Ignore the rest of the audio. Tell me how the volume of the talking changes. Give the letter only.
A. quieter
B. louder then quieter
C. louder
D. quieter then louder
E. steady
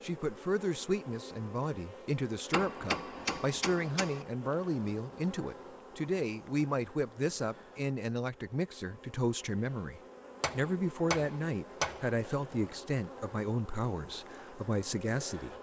E.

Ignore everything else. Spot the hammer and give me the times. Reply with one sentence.
The hammer can be heard from 2.5 to 4.2 s and from 10.4 to 12.2 s.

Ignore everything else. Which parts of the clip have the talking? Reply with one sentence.
The talking can be heard from 0.0 to 15.5 s.